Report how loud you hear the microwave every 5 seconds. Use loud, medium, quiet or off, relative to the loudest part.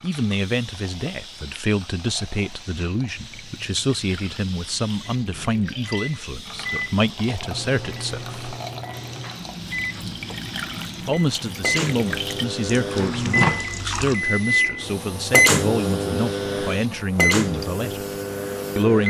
off, medium, loud, loud.